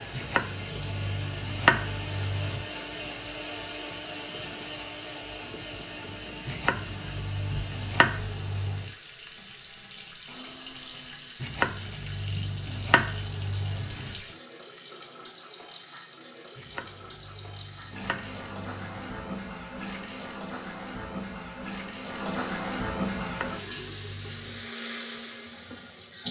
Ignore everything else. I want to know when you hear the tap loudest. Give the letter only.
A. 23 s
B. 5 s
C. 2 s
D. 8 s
A.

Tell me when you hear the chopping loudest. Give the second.
2 s.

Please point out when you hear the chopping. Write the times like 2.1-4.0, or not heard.
0.1-2.6, 6.5-8.9, 11.4-14.2, 16.6-19.1, 23.2-24.7.